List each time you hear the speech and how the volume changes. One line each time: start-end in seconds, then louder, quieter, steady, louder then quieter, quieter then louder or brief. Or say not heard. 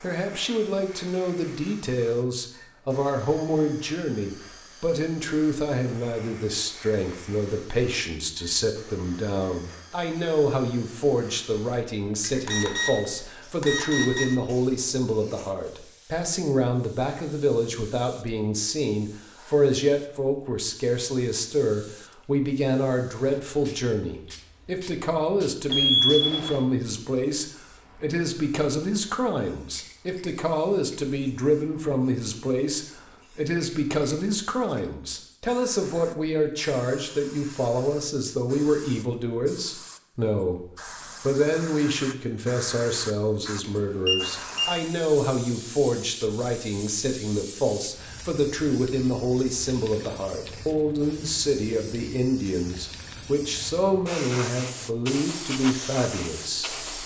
0.0-40.6 steady
41.2-56.8 steady.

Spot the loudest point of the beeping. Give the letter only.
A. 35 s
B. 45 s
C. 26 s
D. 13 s
C.